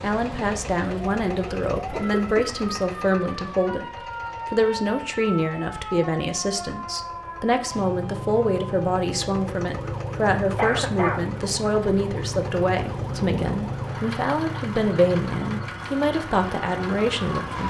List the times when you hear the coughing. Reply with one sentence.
The coughing can be heard from 1.9 to 2.5 s and from 10.6 to 11.3 s.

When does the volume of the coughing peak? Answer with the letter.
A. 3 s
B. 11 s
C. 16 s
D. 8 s
B.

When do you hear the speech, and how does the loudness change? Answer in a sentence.
You can hear the speech from 0.0 to 17.6 s, at a steady volume.